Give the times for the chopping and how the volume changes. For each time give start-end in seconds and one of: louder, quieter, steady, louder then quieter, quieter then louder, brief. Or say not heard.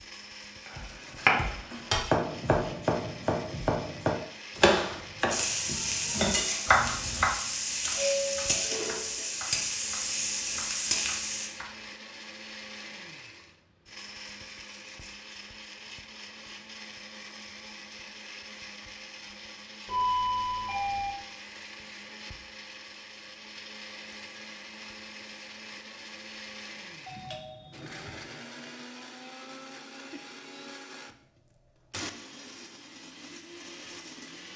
0.7-11.8 quieter.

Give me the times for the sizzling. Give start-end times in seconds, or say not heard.
5.3-11.5.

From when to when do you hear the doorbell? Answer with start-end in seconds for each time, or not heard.
8.0-8.9, 19.9-21.1, 27.1-28.2.